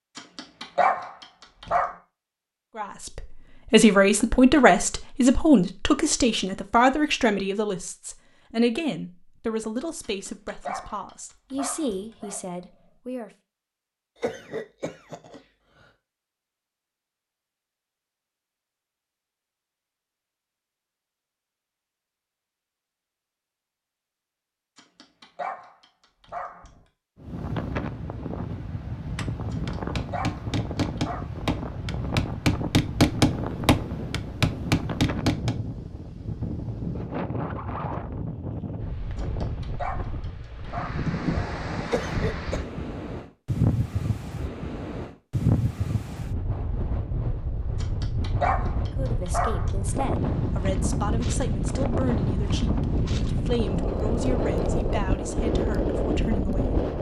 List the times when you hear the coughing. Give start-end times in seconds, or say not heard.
14.2-15.9, 41.9-42.6.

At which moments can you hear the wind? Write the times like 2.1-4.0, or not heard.
27.1-56.9.